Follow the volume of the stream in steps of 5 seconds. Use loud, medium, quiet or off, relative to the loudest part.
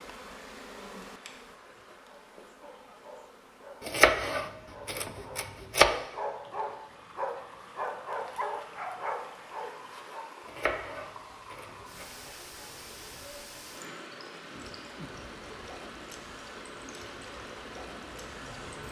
medium, medium, loud, loud.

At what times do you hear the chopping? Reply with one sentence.
You can hear the chopping from 3.9 to 6.0 s and from 10.4 to 12.1 s.